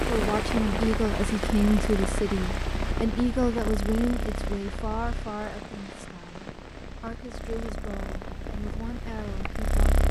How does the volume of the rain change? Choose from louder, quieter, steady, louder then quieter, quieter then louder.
quieter.